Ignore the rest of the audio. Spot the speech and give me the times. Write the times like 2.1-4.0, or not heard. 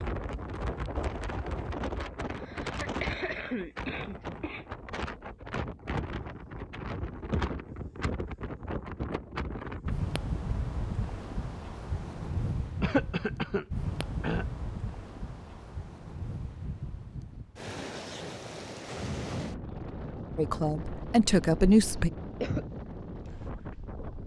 20.4-22.1.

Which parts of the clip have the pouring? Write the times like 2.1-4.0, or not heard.
not heard.